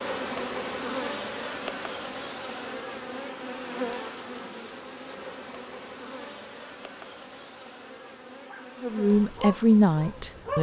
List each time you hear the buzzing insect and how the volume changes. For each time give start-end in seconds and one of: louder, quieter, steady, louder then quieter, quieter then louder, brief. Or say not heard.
0.0-10.5 quieter.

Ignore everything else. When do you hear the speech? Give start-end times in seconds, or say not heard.
8.8-10.5.